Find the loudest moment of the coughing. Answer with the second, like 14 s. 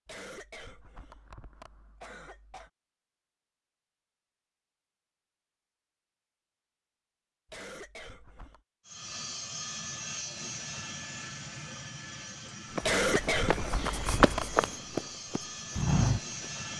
13 s.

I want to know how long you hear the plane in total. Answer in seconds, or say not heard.
8 s.